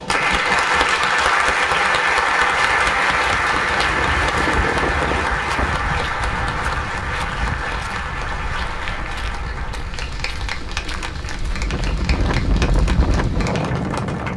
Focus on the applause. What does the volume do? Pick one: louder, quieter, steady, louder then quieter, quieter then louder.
quieter.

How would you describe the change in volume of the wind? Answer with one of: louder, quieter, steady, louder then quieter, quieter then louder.
quieter then louder.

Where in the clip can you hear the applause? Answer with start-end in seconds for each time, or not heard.
0.0-14.3.